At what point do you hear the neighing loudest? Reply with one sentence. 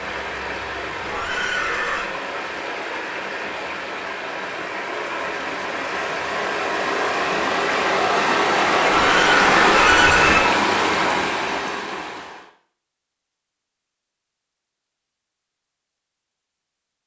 The volume of the neighing peaks at 10 seconds.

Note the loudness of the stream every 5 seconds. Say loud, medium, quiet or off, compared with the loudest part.
medium, loud, loud, off.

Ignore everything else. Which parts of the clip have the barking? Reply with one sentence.
The barking can't be heard in this clip.